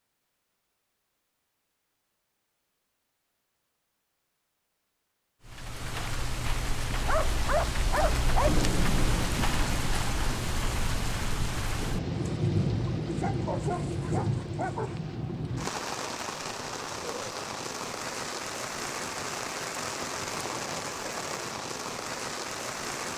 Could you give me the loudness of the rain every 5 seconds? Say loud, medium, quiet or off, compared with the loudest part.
off, loud, loud, loud, loud.